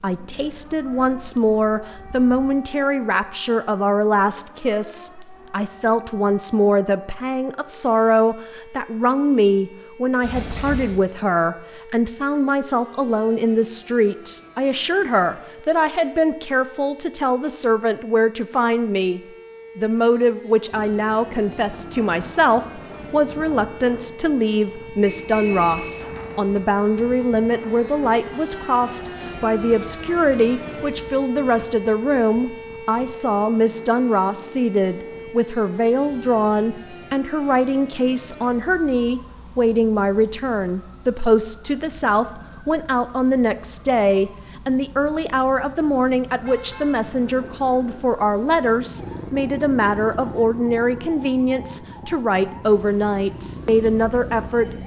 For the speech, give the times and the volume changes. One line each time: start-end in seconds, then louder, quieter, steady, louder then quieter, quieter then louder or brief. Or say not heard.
0.0-54.6 steady.